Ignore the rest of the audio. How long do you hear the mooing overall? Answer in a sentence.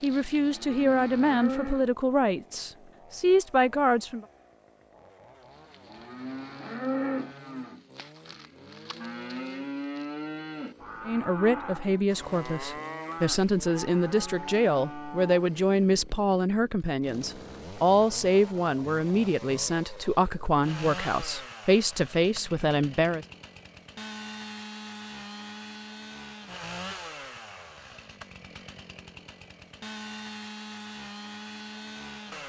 The mooing can be heard for 12 seconds in total.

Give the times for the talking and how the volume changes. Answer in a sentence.
The talking can be heard from 0.0 to 4.2 s, getting quieter then louder; and from 11.1 to 23.2 s, at a steady volume.